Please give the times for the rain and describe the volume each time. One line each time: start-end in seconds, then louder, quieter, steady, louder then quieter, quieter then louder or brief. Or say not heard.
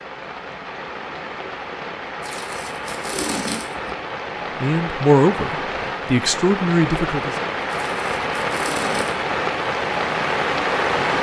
0.0-11.1 louder.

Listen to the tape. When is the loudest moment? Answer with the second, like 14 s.
3 s.